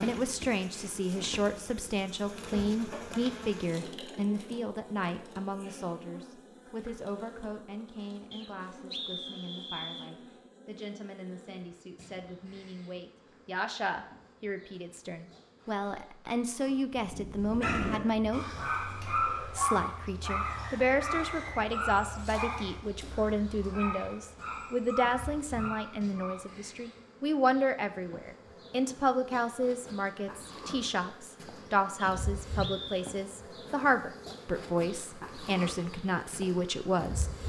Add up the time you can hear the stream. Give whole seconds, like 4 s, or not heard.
not heard.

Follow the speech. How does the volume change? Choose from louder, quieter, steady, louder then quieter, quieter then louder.
quieter then louder.